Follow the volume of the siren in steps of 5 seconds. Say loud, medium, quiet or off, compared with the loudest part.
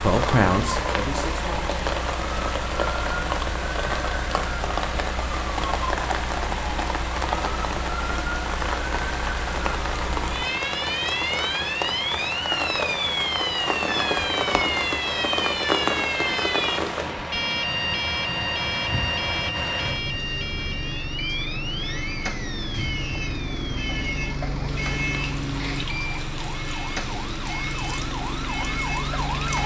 medium, medium, loud, loud, medium, medium.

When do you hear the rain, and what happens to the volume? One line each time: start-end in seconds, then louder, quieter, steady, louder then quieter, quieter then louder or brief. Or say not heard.
0.0-29.6 quieter.